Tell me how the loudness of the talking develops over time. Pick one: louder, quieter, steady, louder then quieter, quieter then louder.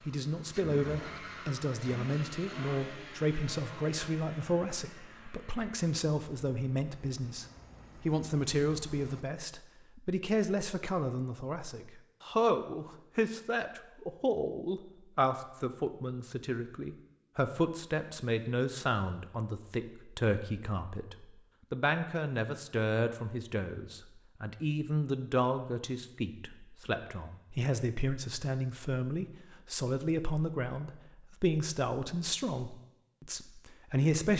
steady.